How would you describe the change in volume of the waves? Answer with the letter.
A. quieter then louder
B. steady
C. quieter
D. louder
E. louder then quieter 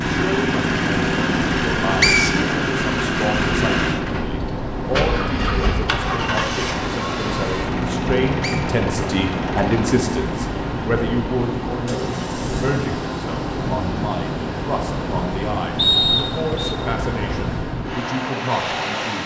B.